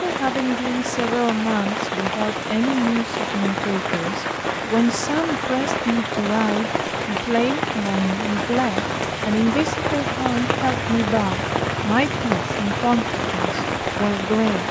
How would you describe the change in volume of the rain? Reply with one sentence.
The loudness of the rain stays about the same.